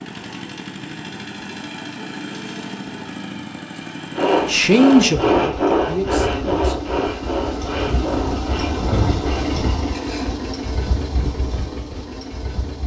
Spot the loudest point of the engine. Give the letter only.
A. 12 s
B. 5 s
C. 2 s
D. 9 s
D.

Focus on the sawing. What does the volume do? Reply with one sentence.
The volume of the sawing goes down.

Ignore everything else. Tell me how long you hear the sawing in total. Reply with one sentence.
You can hear the sawing for 6 seconds altogether.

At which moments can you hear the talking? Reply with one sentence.
You can hear the talking from 4.5 to 6.8 s.